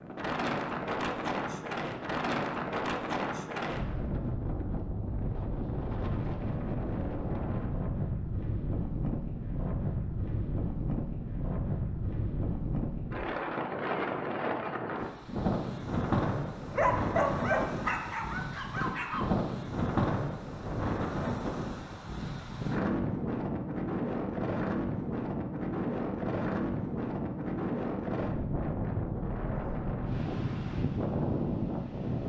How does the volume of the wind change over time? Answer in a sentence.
The volume of the wind stays about the same.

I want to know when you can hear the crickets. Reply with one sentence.
You can't hear the crickets here.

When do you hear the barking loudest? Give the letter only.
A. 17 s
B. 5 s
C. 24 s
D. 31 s
A.